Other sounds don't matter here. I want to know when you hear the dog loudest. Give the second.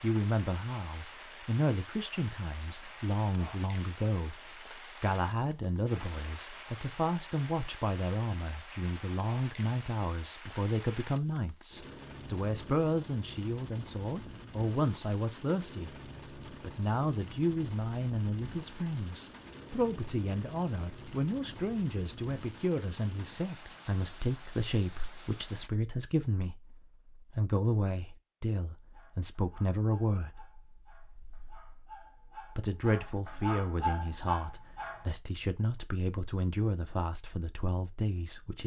34 s.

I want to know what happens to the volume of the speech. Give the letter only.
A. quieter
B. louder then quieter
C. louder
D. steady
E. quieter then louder
D.